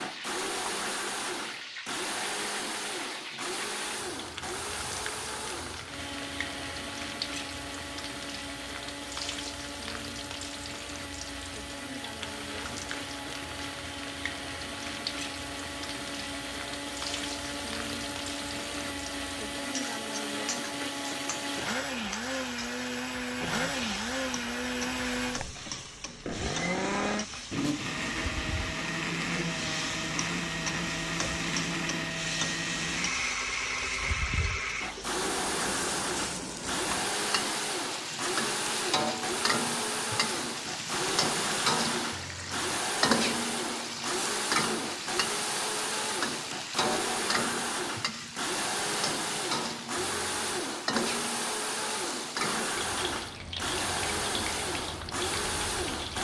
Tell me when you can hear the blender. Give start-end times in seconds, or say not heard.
0.0-56.1.